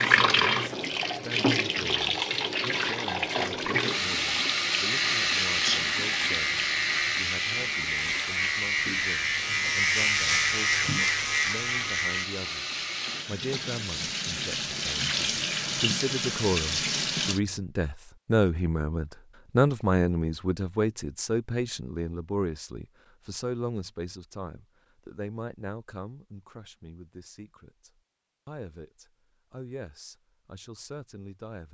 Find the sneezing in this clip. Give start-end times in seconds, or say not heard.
5.3-6.0.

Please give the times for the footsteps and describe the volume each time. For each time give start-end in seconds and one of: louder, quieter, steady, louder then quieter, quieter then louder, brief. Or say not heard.
not heard.